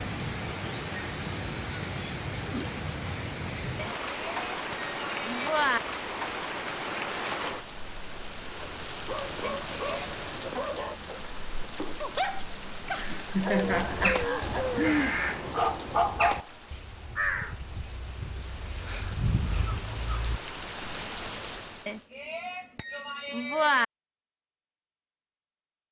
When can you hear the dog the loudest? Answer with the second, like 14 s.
16 s.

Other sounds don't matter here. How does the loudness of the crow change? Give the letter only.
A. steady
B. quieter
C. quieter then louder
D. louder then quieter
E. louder
C.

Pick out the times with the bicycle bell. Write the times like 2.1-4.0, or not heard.
3.8-5.8, 9.4-10.1, 21.9-23.9.